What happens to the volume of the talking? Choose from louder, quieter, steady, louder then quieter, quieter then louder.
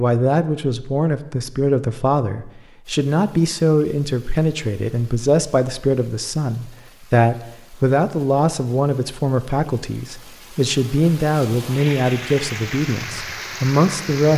steady.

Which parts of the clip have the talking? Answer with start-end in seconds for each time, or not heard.
0.0-14.3.